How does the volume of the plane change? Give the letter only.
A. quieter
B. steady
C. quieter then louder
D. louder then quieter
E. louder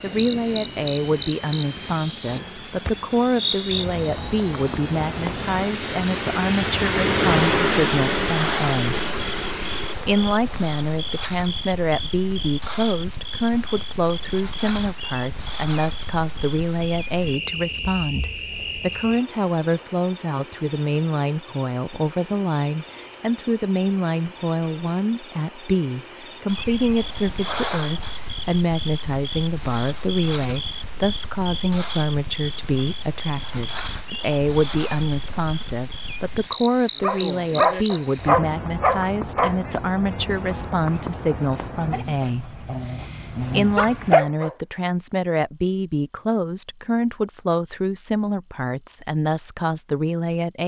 D.